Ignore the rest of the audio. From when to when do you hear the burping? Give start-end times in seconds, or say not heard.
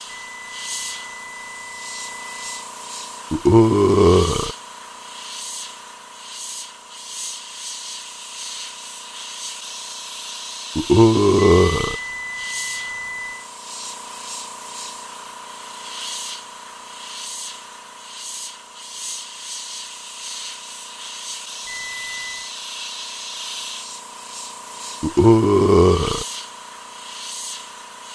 3.3-4.5, 10.8-11.9, 25.0-26.2.